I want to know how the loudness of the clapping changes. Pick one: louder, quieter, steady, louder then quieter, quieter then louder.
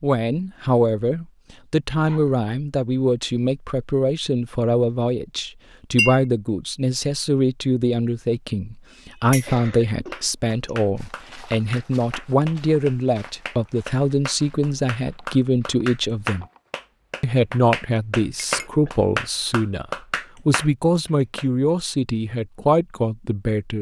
louder.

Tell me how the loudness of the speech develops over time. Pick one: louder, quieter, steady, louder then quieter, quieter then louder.
steady.